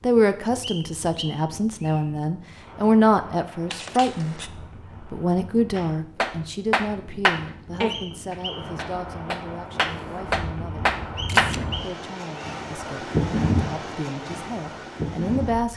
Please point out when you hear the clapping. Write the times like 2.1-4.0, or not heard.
5.8-11.7.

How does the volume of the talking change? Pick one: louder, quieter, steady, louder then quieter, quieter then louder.
quieter then louder.